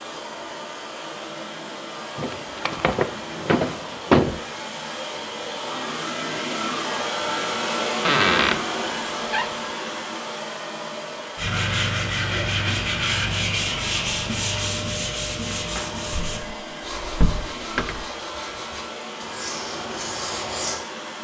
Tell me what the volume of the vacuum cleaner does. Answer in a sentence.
The volume of the vacuum cleaner goes up, then down.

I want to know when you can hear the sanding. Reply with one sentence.
The sanding can be heard from 11.3 to 20.8 s.